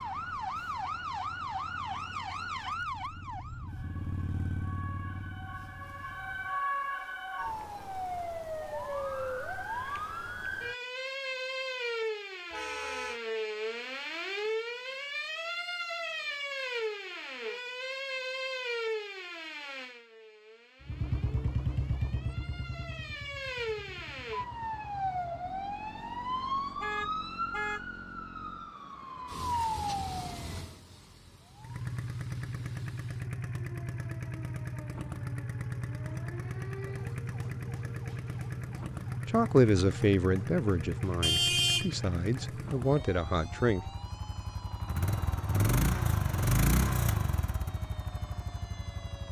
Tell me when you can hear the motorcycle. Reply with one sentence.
You can hear the motorcycle from 0.0 to 6.6 s, from 20.8 to 28.8 s and from 31.6 to 49.2 s.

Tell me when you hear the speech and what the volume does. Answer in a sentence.
The speech can be heard from 39.2 to 43.9 s, getting quieter then louder.